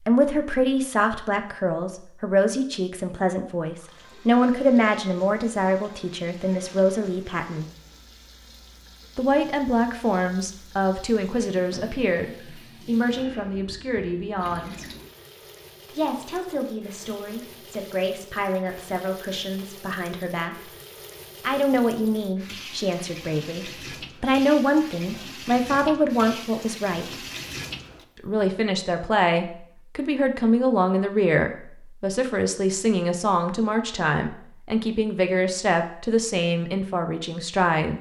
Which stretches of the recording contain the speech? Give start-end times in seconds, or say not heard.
0.1-7.7, 9.2-14.8, 15.9-20.7, 21.4-27.1, 28.2-37.9.